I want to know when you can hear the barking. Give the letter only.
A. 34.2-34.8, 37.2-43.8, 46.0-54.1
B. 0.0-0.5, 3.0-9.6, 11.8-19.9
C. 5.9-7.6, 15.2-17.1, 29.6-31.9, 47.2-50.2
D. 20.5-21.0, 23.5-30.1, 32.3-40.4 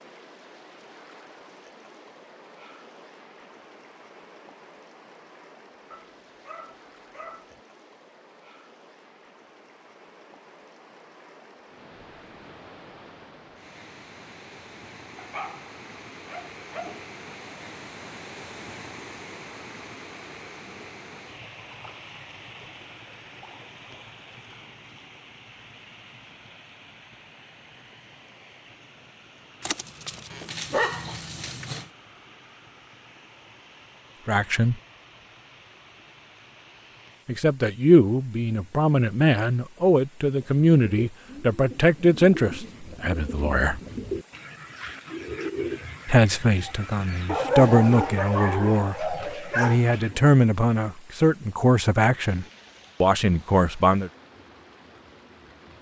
C.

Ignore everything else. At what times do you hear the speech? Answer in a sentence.
The speech can be heard from 34.2 to 34.8 s, from 37.2 to 43.8 s and from 46.0 to 54.1 s.